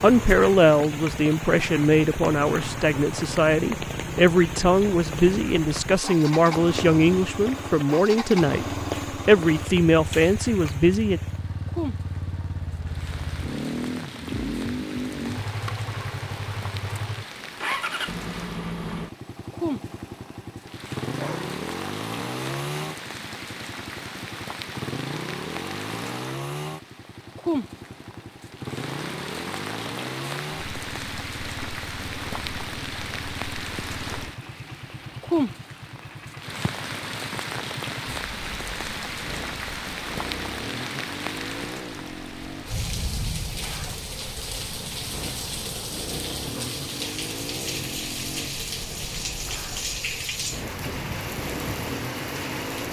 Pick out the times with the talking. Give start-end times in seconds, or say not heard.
0.0-11.2.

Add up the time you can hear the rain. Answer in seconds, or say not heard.
53 s.